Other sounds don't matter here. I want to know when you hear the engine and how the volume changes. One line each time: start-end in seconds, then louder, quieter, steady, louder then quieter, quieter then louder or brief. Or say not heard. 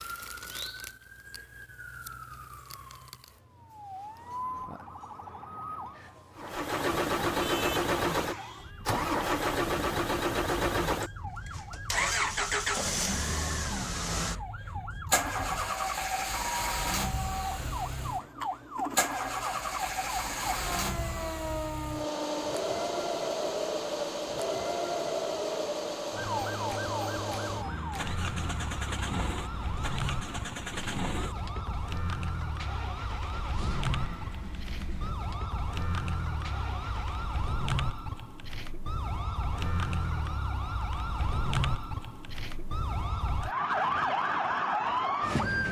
6.3-37.4 quieter.